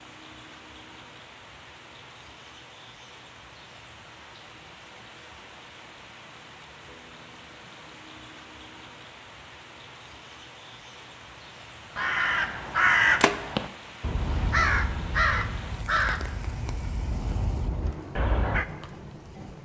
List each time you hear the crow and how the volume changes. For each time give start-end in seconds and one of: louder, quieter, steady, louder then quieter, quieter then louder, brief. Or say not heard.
11.9-18.6 quieter.